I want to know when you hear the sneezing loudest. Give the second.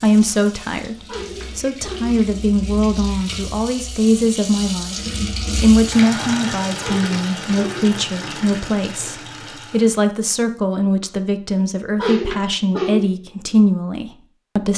12 s.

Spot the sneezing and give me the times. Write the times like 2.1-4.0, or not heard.
1.1-2.1, 6.8-7.8, 11.9-13.0.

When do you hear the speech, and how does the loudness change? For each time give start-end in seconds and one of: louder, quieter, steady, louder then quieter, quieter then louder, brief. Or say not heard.
0.0-14.7 steady.